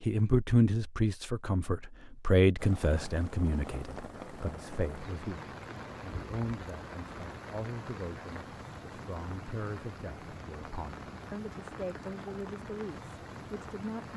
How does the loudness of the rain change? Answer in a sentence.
The volume of the rain stays about the same.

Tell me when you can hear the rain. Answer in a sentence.
The rain can be heard from 2.5 to 14.1 s.